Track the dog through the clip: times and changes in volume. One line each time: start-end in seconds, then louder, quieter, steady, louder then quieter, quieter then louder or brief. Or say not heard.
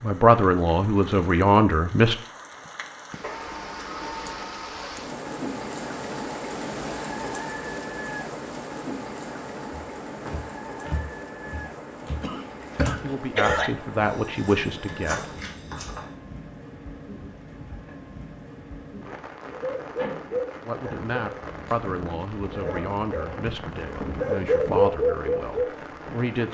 19.5-26.3 quieter then louder.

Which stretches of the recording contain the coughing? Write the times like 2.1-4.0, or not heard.
12.2-13.7.